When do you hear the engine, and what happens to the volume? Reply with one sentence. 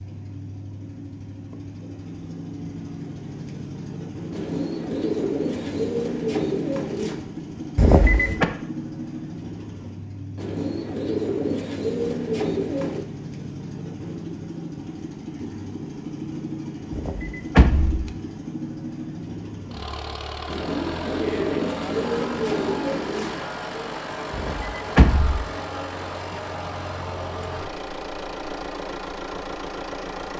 The engine can be heard from 0.0 to 30.3 s, at a steady volume.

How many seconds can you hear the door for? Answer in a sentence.
The door can be heard for 3 seconds in total.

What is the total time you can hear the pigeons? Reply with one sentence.
The pigeons can be heard for 9 seconds in total.